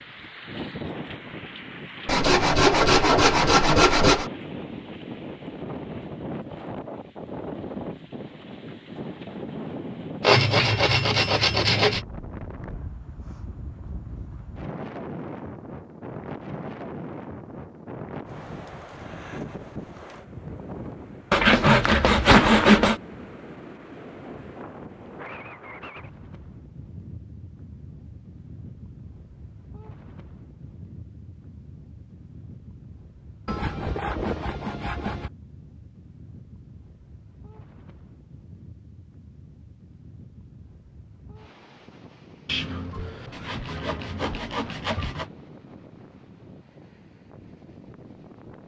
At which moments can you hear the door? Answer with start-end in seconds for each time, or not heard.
not heard.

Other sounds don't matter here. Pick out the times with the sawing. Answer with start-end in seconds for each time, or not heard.
2.0-4.3, 10.2-12.0, 21.3-23.0, 33.5-35.3, 42.5-45.3.